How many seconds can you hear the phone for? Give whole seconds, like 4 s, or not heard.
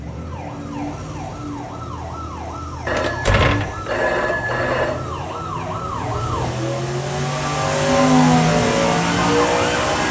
2 s.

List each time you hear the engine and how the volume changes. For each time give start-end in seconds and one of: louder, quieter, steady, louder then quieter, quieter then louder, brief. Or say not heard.
0.0-10.0 louder.